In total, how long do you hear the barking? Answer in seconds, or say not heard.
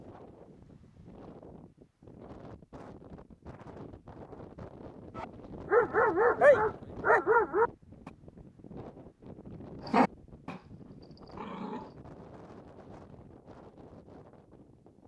5 s.